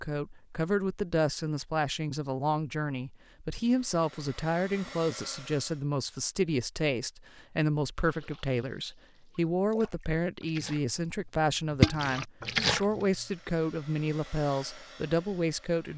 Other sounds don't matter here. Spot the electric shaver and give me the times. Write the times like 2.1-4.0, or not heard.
not heard.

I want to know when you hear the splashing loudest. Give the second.
12 s.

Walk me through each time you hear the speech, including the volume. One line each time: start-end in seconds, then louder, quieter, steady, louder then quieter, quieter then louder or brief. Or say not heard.
0.0-15.9 steady.